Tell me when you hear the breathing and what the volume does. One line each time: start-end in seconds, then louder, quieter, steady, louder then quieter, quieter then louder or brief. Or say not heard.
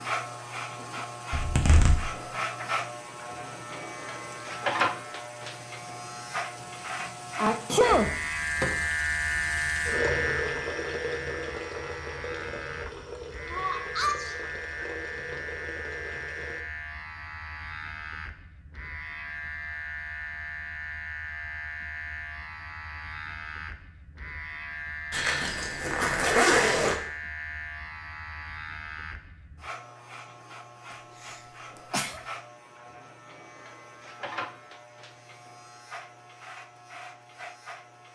not heard.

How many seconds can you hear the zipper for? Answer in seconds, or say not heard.
3 s.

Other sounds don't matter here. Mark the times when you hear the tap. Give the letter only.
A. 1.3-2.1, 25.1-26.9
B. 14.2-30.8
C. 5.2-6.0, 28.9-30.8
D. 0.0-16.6
D.